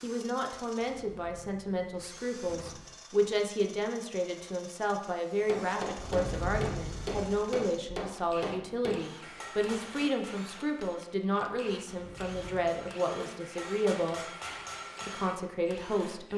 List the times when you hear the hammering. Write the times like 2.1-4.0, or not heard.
5.4-15.3.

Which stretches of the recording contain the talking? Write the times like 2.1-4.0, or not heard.
0.0-14.2, 15.1-16.3.